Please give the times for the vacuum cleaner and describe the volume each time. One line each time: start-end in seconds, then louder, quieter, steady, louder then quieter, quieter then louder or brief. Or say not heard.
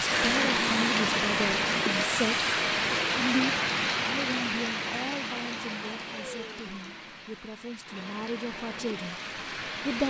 0.0-10.0 quieter.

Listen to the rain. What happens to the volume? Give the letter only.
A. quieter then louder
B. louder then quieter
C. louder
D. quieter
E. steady
D.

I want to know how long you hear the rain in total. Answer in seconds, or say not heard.
10 s.